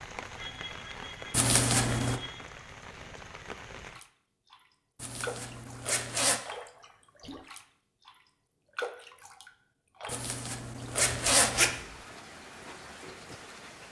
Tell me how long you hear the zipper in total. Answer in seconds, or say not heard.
4 s.